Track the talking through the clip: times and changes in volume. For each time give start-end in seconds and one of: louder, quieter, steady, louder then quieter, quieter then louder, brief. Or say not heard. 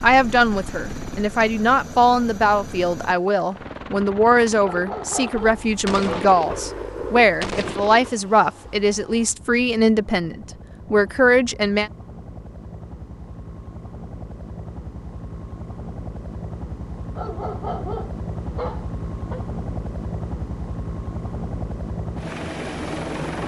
0.0-11.9 steady.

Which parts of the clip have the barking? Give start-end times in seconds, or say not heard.
4.6-6.2, 17.1-19.4.